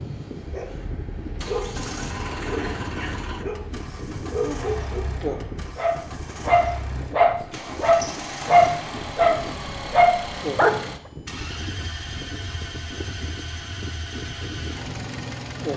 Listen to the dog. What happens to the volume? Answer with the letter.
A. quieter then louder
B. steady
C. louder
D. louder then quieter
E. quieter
C.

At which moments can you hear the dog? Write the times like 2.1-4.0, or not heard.
0.3-10.8.